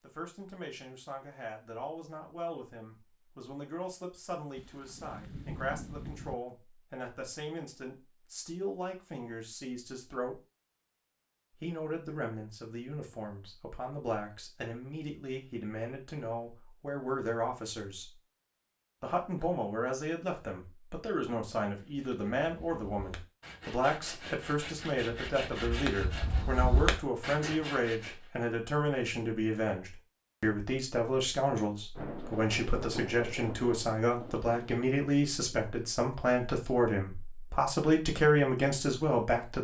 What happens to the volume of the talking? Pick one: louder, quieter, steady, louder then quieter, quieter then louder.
louder.